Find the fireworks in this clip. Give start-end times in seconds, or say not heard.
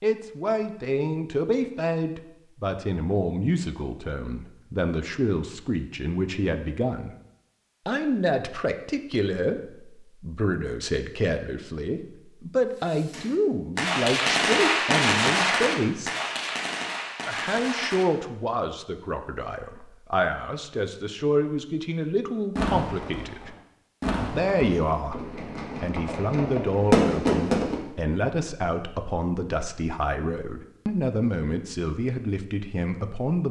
12.8-18.1, 22.6-27.8.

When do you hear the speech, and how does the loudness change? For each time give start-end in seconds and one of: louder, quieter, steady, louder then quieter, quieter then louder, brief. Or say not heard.
0.0-7.1 steady
7.8-16.1 steady
17.2-23.6 quieter then louder
24.3-33.4 steady.